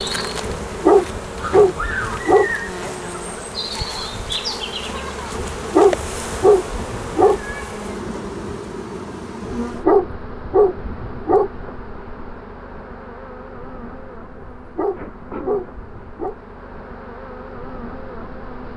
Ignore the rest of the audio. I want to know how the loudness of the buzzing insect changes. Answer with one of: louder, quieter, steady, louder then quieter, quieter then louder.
quieter.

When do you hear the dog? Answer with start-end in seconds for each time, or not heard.
0.5-2.5, 5.3-7.7, 9.4-11.8, 14.3-16.4.